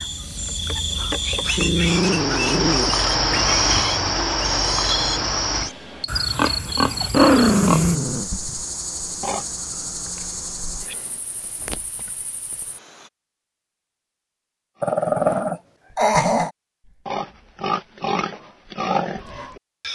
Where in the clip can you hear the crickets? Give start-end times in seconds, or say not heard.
0.0-13.1.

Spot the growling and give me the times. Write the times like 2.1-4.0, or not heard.
1.6-3.0, 7.1-8.3, 14.8-16.5.